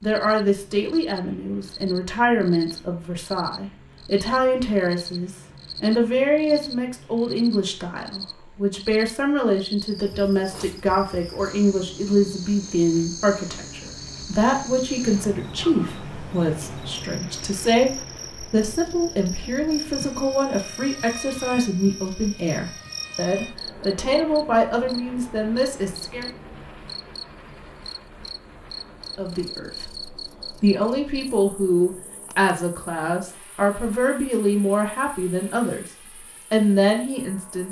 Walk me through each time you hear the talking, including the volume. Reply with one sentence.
You can hear the talking from 0.0 to 26.3 s, at a steady volume; from 29.1 to 35.9 s, at a steady volume; and briefly from 36.5 to 37.6 s.